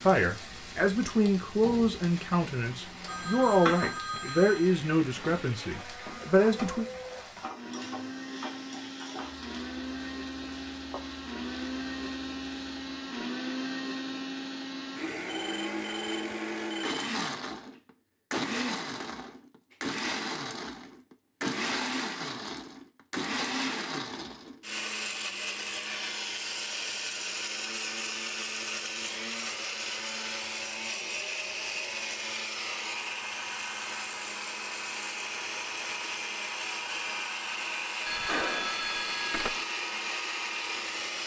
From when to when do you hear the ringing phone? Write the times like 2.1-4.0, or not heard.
3.0-4.8, 15.2-17.1, 38.0-39.6.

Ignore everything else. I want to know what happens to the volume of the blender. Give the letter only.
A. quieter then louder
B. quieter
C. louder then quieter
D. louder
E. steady
D.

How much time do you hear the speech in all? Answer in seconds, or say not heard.
7 s.